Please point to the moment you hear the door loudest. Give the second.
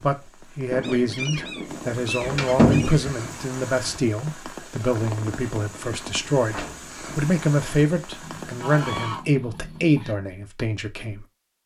3 s.